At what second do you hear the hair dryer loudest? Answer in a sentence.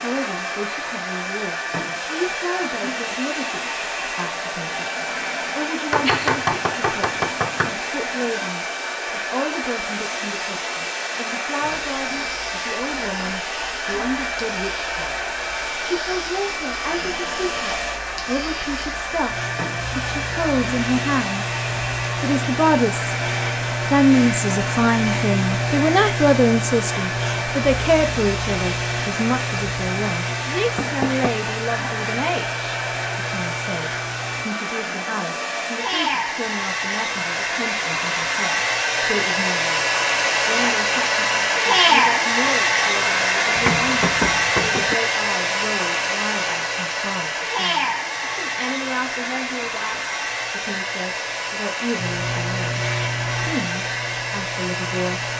The loudest moment of the hair dryer is at 42 seconds.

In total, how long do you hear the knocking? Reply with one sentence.
The knocking can be heard for 4 seconds in total.